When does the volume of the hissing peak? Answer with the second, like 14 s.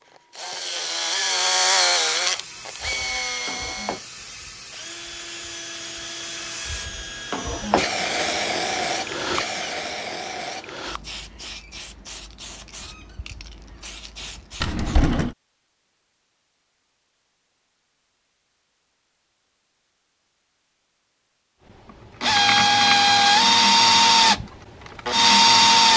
8 s.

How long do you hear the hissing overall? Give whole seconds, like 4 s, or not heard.
13 s.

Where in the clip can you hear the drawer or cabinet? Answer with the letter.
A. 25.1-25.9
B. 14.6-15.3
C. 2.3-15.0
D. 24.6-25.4
B.